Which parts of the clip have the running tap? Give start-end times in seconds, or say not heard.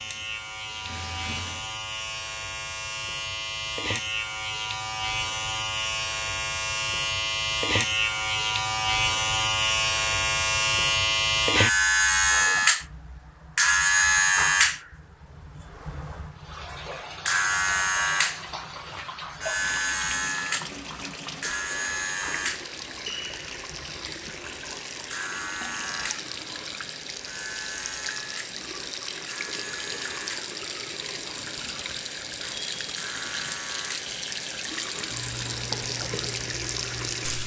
0.0-1.7, 16.4-37.4.